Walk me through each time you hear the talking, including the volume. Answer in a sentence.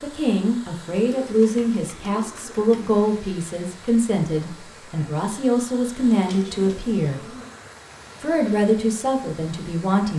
The talking can be heard from 0.0 to 7.3 s, at a steady volume; and briefly from 8.2 to 10.1 s.